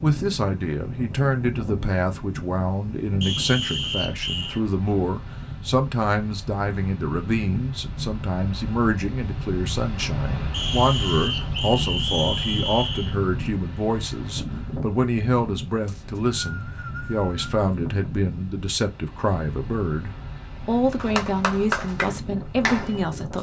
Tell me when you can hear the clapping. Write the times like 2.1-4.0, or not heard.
20.9-23.1.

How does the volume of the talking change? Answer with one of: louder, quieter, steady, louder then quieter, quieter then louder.
steady.